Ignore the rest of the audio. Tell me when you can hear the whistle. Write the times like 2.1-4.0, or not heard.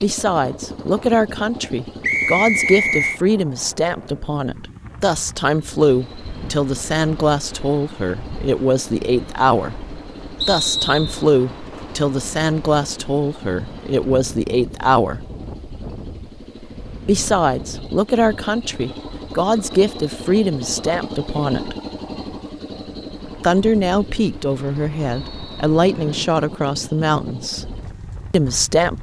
2.0-3.2, 10.4-11.2, 25.1-26.2.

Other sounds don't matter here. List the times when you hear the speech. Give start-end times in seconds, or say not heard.
0.0-9.8, 10.4-15.2, 17.1-21.8, 23.4-28.9.